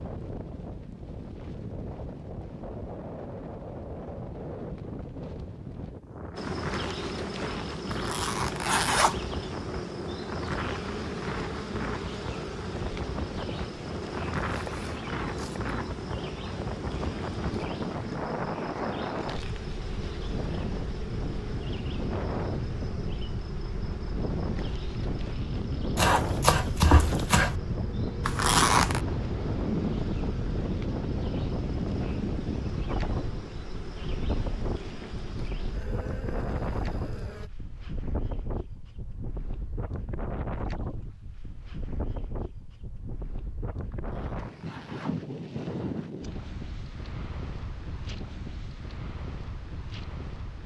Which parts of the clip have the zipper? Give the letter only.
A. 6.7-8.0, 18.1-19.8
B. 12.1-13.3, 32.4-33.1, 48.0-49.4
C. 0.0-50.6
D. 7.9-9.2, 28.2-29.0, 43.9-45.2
D.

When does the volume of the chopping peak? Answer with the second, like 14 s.
27 s.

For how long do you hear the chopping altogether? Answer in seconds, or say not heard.
3 s.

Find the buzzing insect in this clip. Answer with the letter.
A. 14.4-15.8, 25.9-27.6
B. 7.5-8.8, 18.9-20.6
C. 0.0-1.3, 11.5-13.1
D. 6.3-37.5
D.